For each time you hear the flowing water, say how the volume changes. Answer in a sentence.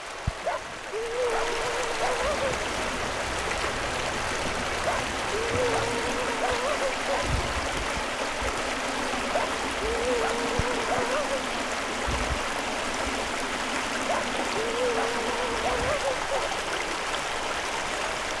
The flowing water can be heard from 0.0 to 18.3 s, at a steady volume.